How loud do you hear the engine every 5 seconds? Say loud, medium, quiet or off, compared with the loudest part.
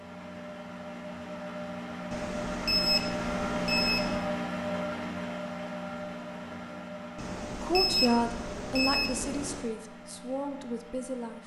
loud, medium, quiet.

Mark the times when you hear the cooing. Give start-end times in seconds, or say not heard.
not heard.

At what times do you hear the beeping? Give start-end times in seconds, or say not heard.
2.1-4.2, 7.2-9.8.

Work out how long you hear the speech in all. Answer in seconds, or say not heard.
4 s.